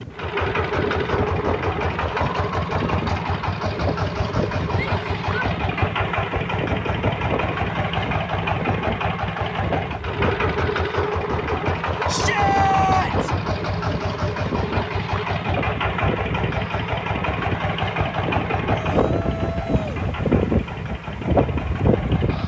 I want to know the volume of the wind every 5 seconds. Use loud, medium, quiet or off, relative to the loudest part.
medium, medium, medium, medium, loud.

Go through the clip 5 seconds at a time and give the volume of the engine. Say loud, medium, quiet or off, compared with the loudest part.
loud, loud, loud, loud, medium.